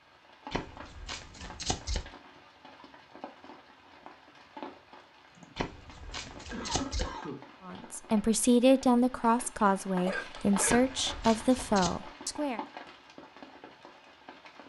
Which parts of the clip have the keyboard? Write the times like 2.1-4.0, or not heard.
not heard.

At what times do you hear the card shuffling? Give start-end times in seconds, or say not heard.
0.5-2.0, 5.5-7.1, 10.7-11.9.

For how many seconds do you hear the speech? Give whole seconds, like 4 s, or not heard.
5 s.